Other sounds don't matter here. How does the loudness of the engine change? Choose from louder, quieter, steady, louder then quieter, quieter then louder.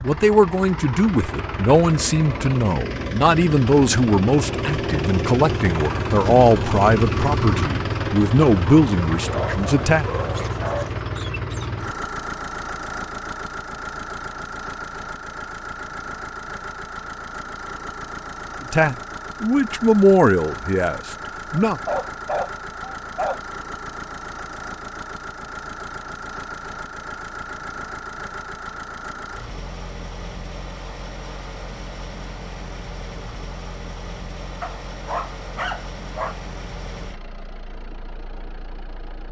quieter.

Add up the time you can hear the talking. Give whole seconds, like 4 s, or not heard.
13 s.